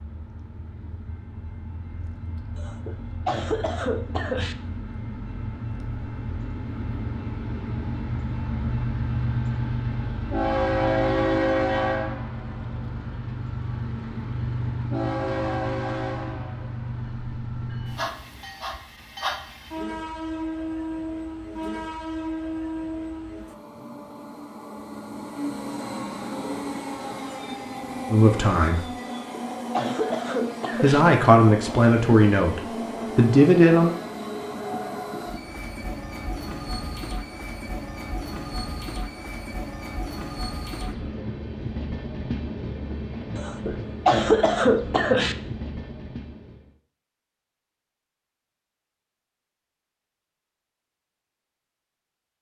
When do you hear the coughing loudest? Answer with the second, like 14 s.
44 s.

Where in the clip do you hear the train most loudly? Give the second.
11 s.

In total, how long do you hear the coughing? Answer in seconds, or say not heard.
6 s.